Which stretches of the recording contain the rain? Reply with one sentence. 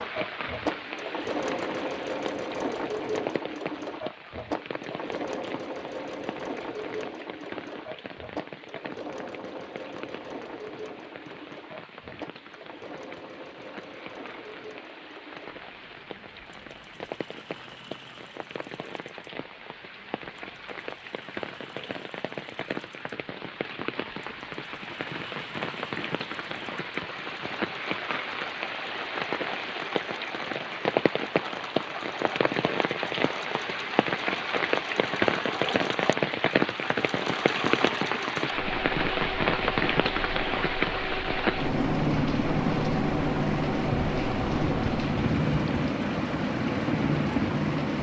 You can hear the rain from 0.0 to 47.9 s.